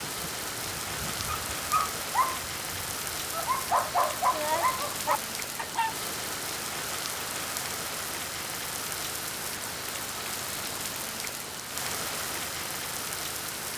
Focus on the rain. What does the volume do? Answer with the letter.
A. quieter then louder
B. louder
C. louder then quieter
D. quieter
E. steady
E.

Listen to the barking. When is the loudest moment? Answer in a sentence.
The volume of the barking peaks at 4 seconds.